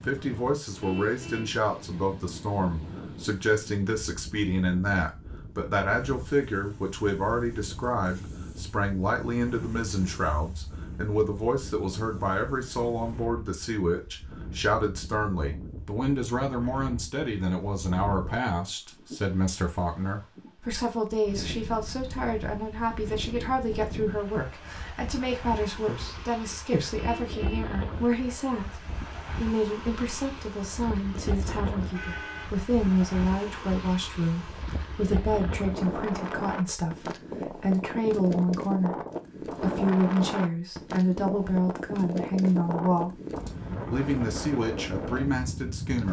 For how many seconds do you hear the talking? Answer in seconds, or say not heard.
45 s.